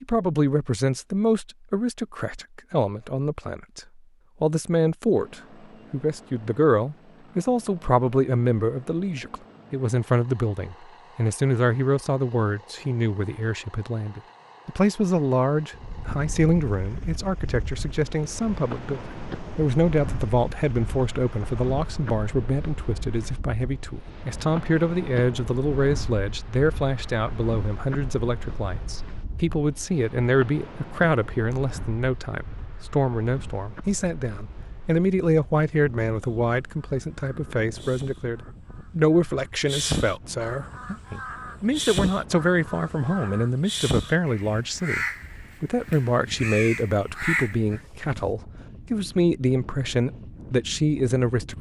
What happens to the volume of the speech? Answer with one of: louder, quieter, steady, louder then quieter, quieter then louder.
steady.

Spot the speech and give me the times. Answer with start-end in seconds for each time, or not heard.
0.0-51.5.